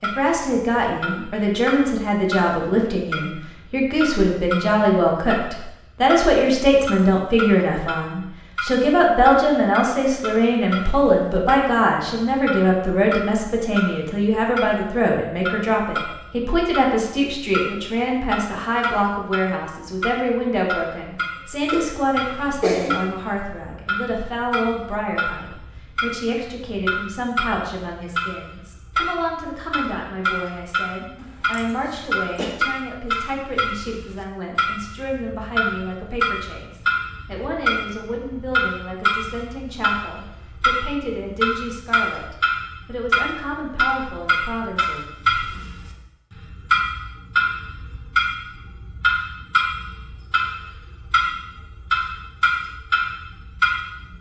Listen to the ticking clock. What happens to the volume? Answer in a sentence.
The volume of the ticking clock goes up.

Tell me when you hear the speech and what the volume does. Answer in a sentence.
The speech can be heard from 0.0 to 45.0 s, getting quieter.